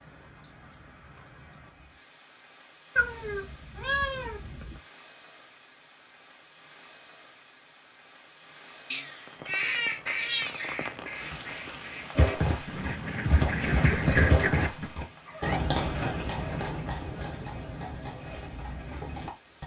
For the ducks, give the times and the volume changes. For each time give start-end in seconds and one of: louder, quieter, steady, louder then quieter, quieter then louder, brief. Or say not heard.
9.4-14.9 quieter then louder.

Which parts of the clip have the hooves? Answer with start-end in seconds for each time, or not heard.
12.2-19.6.